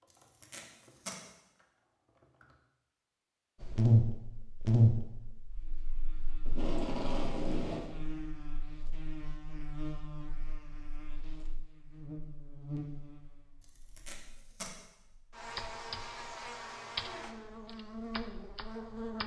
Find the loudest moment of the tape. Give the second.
7 s.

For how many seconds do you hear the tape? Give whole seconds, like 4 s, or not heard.
3 s.